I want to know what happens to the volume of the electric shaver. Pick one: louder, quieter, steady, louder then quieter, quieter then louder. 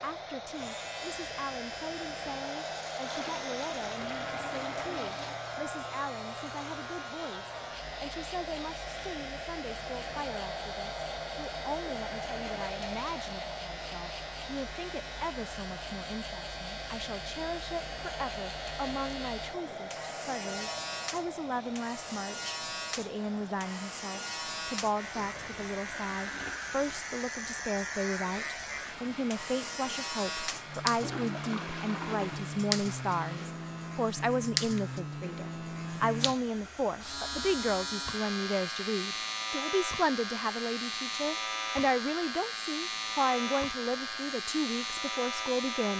louder.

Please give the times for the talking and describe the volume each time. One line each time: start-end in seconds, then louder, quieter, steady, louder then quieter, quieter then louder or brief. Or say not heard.
0.0-45.9 louder.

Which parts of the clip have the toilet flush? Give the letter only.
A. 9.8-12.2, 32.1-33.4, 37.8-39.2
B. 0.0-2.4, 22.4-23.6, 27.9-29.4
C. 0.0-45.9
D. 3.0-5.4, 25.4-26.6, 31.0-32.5
D.